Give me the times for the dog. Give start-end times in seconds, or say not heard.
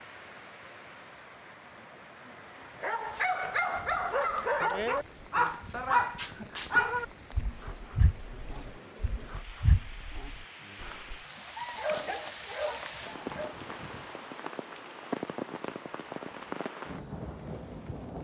2.8-13.6.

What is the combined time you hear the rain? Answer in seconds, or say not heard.
18 s.